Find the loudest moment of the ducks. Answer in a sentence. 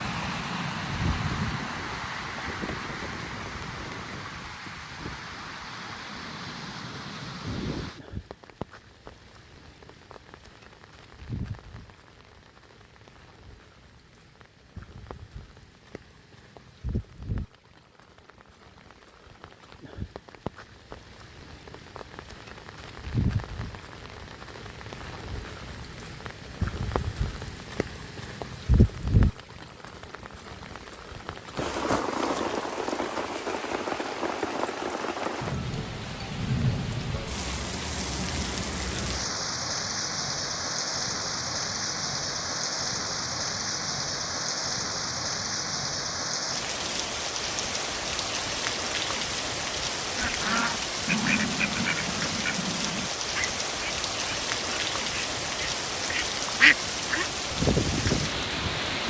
The volume of the ducks peaks at 57 seconds.